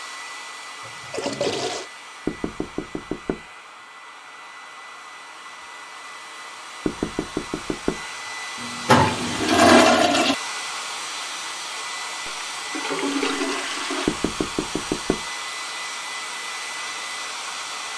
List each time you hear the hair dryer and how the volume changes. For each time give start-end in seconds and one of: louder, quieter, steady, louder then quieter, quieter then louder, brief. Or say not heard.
0.0-17.9 louder.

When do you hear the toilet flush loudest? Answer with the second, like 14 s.
9 s.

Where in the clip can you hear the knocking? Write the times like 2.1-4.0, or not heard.
2.2-3.5, 6.8-8.0, 14.1-15.2.